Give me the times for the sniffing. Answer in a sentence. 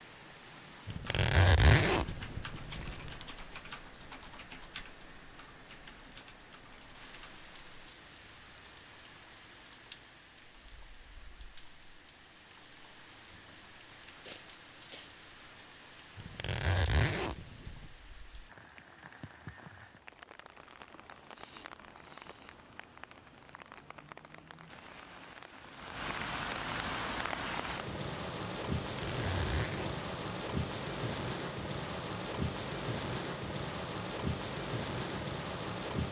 You can hear the sniffing from 14.2 to 15.1 s and from 21.3 to 22.6 s.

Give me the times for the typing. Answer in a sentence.
The typing can be heard from 1.1 to 7.9 s.